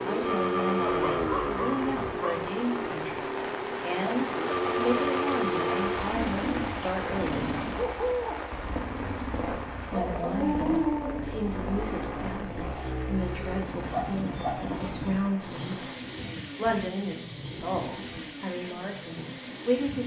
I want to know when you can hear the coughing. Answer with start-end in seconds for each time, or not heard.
not heard.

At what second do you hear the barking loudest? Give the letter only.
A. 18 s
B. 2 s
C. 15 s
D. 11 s
D.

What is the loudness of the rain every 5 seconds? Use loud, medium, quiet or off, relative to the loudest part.
loud, loud, medium, medium.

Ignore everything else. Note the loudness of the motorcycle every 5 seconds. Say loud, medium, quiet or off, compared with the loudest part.
loud, loud, medium, medium.